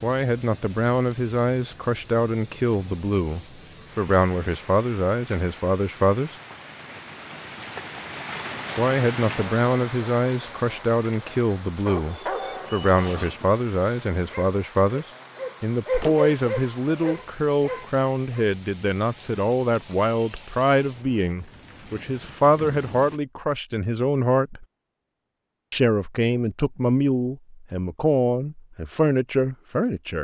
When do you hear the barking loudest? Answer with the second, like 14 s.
16 s.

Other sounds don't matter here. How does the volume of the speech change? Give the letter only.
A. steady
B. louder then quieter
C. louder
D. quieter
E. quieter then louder
A.